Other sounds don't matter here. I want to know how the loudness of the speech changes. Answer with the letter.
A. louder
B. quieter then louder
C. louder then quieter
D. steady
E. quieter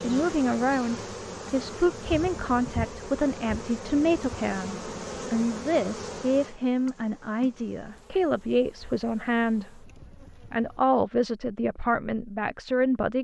D.